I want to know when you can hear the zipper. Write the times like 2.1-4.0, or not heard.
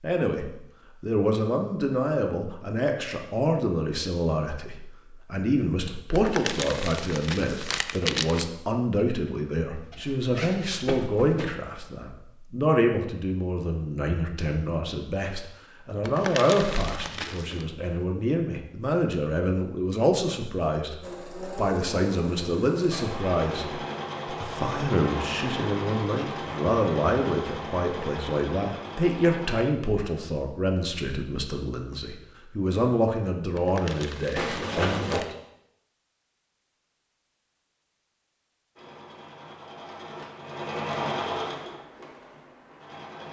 9.7-11.6, 16.8-18.1, 34.4-35.2.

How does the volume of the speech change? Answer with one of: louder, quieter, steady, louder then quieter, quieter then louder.
steady.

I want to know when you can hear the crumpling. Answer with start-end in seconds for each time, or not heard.
6.1-8.4, 16.0-17.6, 33.5-35.4.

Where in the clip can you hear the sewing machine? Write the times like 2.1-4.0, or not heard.
21.0-29.6, 38.8-43.2.